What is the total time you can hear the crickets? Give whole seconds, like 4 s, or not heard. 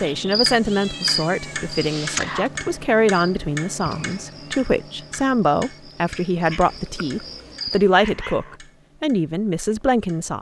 8 s.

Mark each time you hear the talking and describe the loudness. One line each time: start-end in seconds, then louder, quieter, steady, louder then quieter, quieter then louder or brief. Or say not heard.
0.0-10.3 steady.